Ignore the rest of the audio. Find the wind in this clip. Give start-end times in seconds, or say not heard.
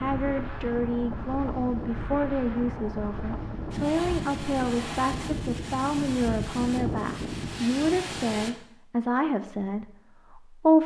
0.0-8.5.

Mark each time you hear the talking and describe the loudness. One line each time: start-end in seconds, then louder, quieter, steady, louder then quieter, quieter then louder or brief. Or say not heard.
0.0-10.8 steady.